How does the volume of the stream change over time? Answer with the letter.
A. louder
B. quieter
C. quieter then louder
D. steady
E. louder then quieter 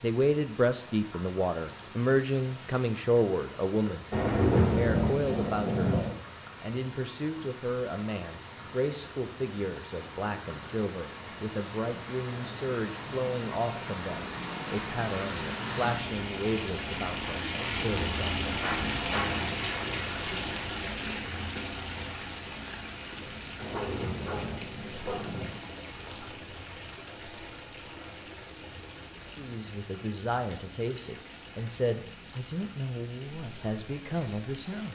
E.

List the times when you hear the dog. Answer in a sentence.
The dog can be heard from 23.7 to 25.4 s.